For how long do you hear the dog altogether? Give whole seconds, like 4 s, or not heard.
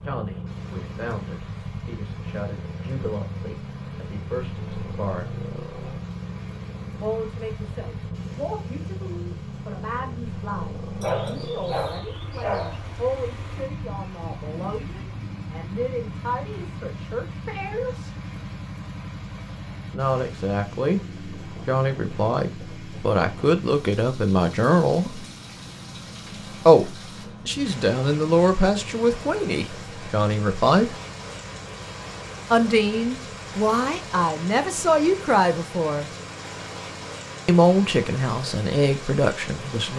2 s.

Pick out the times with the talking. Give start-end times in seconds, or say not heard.
0.0-5.3, 7.0-18.1, 19.9-25.2, 26.6-30.9, 32.5-36.1, 37.5-39.9.